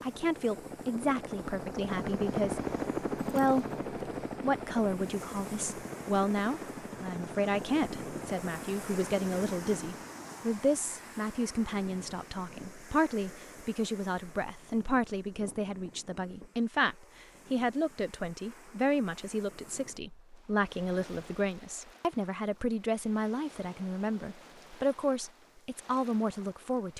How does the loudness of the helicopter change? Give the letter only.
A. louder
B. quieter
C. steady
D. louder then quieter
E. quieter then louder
D.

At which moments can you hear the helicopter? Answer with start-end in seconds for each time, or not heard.
0.0-9.4.